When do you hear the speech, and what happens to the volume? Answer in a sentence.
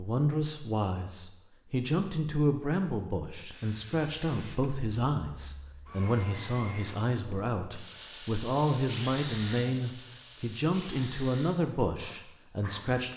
You can hear the speech from 0.0 to 13.1 s, at a steady volume.